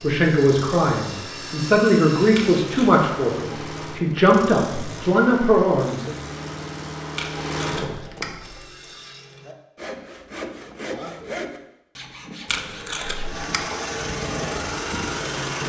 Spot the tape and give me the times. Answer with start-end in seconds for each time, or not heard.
2.4-2.9, 7.2-8.3, 12.4-13.7.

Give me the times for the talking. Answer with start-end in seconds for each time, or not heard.
0.0-6.1.